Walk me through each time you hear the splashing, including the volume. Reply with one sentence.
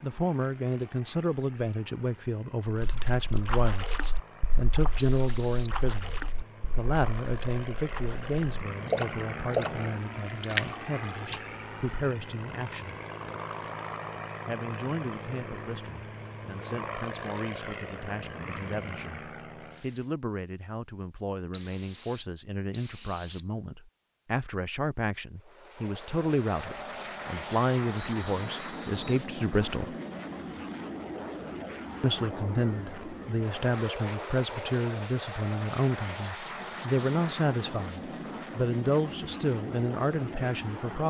The splashing can be heard from 2.8 to 11.4 s, getting quieter then louder.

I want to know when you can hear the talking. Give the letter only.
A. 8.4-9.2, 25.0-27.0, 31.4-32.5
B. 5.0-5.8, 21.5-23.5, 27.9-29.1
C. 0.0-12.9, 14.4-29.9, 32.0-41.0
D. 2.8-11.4
C.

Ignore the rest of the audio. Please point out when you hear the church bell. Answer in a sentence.
You can't hear the church bell here.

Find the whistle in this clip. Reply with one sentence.
You can hear the whistle from 5.0 to 5.8 s, from 21.5 to 23.5 s and from 27.9 to 29.1 s.